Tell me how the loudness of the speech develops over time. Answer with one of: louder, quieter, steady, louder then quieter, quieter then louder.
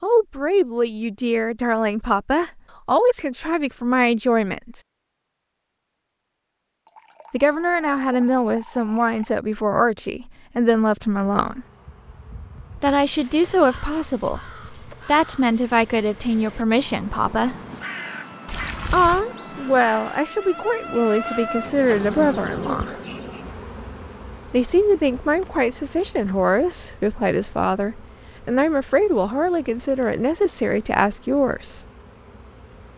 steady.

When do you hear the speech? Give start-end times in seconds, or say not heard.
0.0-4.8, 7.3-11.7, 12.8-17.6, 18.9-22.9, 24.5-31.9.